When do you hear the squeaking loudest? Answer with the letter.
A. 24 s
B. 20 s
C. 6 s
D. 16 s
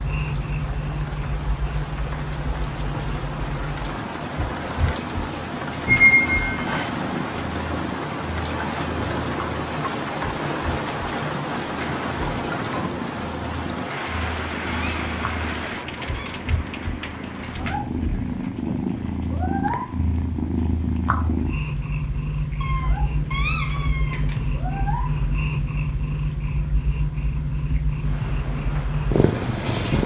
C.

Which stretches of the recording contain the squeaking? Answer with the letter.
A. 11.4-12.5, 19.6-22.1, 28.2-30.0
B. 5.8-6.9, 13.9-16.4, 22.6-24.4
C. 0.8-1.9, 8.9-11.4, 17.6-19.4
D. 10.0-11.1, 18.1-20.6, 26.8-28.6
B.